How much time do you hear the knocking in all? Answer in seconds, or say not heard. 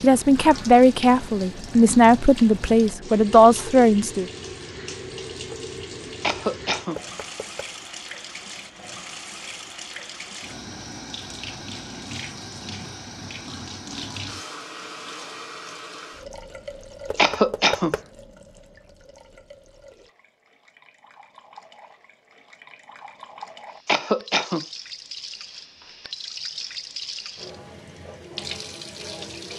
2 s.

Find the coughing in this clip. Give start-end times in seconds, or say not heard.
6.2-7.0, 17.1-17.9, 23.9-24.6.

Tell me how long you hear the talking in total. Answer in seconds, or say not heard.
4 s.